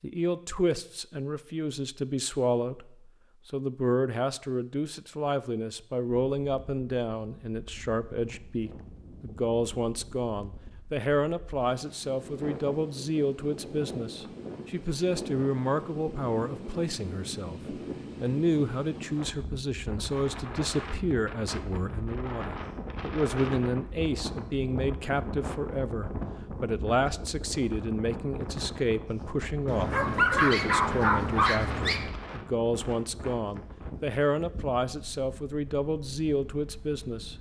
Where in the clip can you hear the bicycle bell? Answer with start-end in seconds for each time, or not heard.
not heard.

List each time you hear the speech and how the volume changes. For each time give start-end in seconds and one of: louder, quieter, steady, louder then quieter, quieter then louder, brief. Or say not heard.
0.0-37.3 steady.